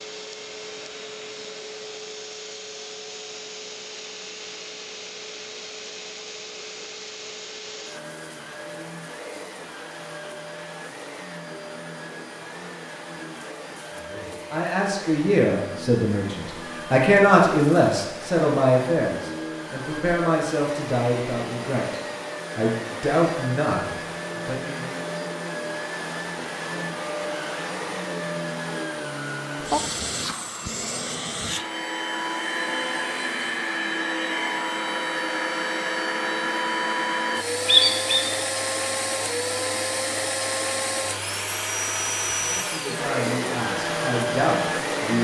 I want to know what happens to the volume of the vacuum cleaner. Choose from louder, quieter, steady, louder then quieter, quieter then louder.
louder.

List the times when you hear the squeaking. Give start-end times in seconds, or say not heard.
37.6-38.3.